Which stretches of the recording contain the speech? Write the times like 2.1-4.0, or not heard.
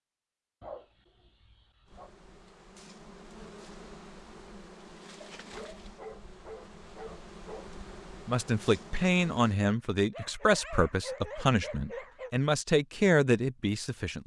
8.2-14.2.